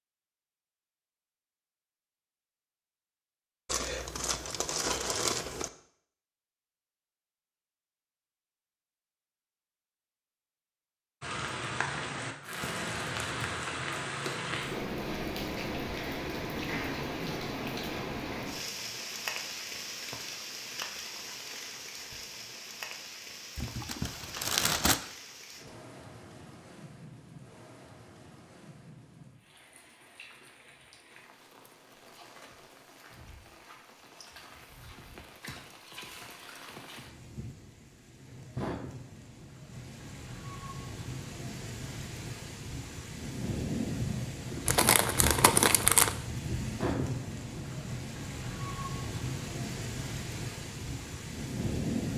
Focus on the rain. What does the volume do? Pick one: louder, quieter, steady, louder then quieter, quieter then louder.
quieter then louder.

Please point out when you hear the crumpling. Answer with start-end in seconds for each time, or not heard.
3.6-5.7, 23.6-25.0, 44.6-46.1.